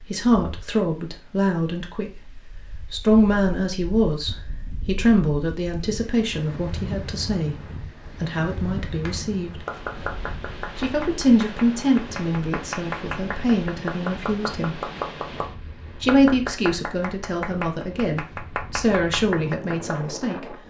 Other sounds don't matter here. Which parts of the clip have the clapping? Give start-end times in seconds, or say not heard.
9.0-19.9.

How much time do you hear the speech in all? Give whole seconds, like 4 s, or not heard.
17 s.